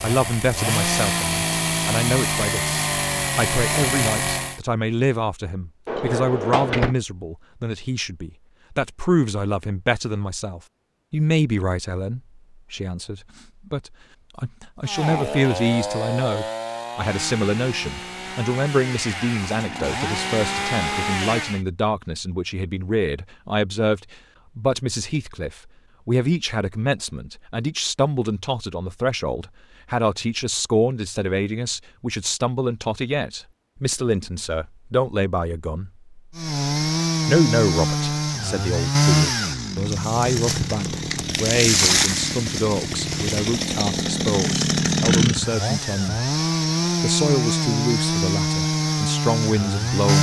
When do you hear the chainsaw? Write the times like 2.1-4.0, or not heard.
0.0-4.6, 14.8-21.6, 36.4-50.1.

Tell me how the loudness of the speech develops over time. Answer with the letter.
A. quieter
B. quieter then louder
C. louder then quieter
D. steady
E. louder
D.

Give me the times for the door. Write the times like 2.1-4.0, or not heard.
5.8-7.0.